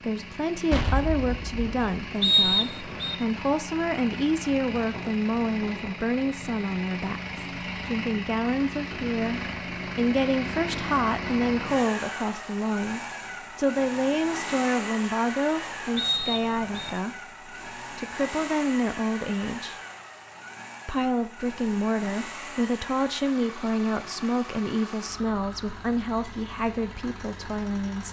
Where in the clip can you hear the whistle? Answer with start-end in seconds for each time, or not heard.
2.2-3.1, 15.9-16.9.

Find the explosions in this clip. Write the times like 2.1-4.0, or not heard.
0.7-1.9.